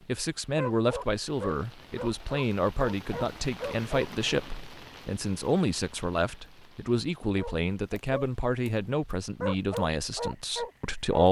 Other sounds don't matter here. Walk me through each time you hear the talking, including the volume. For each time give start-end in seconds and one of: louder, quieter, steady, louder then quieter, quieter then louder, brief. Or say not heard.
0.1-11.2 steady.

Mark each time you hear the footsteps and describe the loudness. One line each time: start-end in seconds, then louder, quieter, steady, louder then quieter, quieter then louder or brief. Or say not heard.
not heard.